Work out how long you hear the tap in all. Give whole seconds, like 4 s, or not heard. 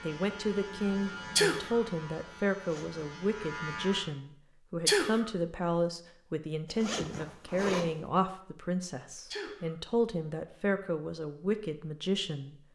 not heard.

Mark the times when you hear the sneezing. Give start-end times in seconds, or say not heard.
1.4-1.8, 4.8-5.3, 9.3-9.8.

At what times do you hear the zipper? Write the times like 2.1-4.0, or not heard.
2.5-3.0, 6.7-8.1.